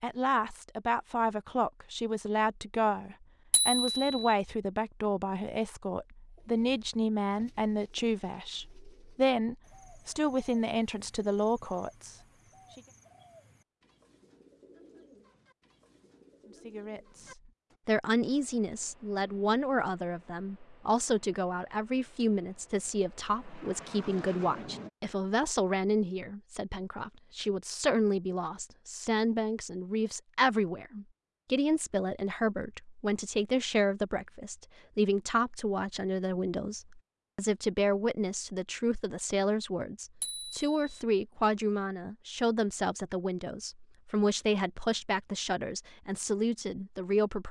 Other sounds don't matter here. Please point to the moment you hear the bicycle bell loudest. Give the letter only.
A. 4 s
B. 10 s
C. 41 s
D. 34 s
A.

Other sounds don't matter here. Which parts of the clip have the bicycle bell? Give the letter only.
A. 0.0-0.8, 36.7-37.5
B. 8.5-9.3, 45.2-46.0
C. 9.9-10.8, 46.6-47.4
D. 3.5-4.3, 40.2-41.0
D.